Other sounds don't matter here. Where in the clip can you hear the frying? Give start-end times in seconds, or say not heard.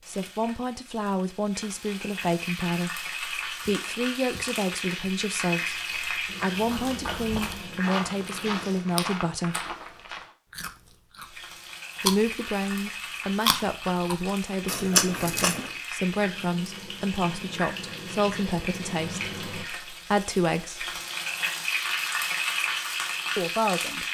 0.0-8.8, 11.2-24.0.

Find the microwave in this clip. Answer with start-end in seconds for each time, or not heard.
not heard.